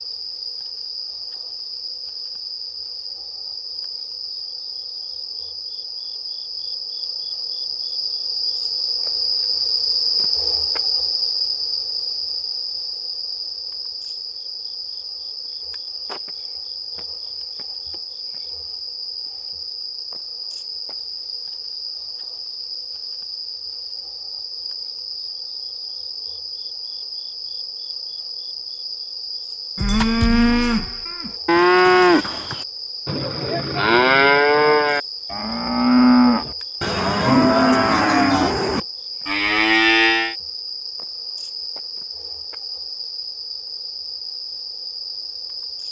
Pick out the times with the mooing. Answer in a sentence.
The mooing can be heard from 29.8 to 40.4 s.